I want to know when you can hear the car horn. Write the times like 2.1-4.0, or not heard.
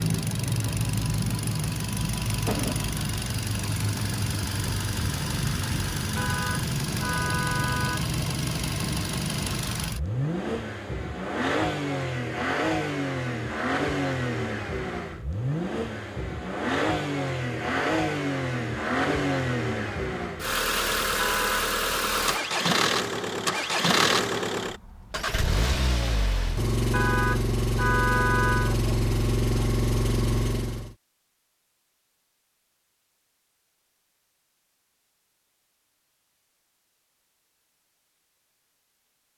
6.2-8.1, 21.1-21.7, 26.9-28.8.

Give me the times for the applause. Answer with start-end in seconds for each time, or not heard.
not heard.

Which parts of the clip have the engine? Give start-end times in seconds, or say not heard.
0.0-30.9.